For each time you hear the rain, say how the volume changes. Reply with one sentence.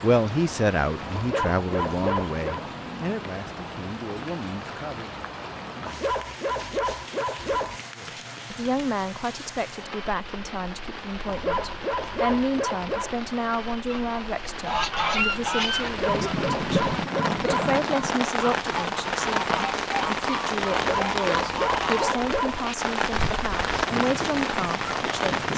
The rain can be heard from 0.0 to 25.5 s, getting louder.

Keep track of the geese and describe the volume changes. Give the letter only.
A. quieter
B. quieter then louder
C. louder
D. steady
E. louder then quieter
A.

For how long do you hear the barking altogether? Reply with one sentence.
You can hear the barking for 9 seconds altogether.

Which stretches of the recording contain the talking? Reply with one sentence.
The talking can be heard from 0.0 to 5.1 s and from 8.0 to 25.4 s.